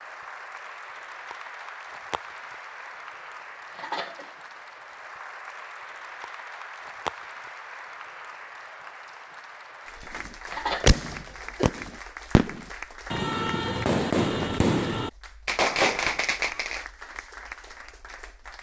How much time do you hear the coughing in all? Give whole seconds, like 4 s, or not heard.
2 s.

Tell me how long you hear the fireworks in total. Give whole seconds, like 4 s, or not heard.
6 s.